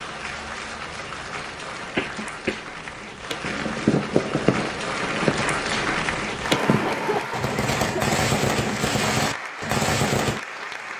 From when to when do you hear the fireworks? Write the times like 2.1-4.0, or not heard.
3.4-10.4.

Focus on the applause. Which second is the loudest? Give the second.
6 s.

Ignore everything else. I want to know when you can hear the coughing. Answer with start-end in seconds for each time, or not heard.
1.9-2.6, 6.8-8.2.